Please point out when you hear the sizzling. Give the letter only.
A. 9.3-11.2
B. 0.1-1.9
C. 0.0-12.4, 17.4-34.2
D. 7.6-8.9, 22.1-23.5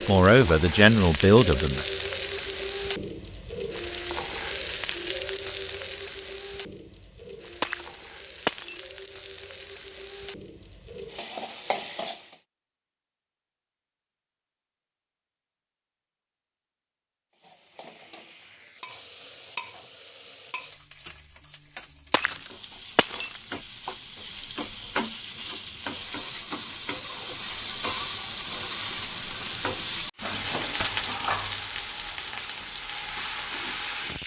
C.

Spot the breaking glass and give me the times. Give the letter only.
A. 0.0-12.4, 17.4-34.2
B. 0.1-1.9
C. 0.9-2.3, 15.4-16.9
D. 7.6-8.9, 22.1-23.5
D.